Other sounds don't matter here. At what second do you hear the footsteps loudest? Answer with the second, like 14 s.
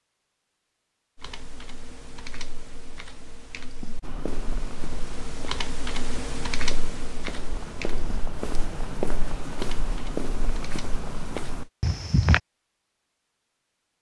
12 s.